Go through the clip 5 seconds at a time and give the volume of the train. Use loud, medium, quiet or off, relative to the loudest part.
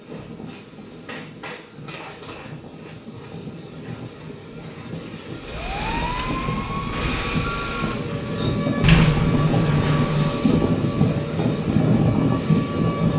quiet, medium, loud.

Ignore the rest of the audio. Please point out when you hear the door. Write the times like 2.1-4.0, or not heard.
8.8-10.3.